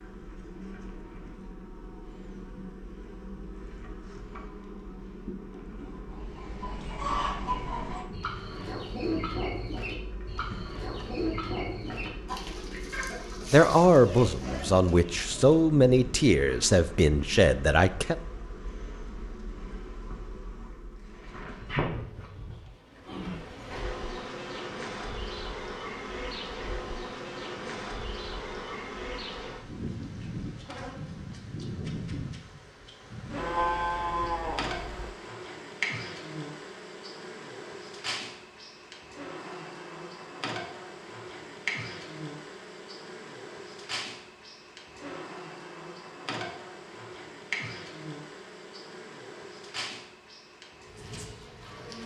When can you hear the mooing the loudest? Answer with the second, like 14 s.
34 s.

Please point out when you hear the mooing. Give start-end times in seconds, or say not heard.
33.4-35.1.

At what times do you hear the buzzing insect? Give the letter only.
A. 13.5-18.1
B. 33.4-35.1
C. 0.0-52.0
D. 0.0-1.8
C.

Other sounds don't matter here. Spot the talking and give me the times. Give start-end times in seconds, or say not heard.
13.5-18.1.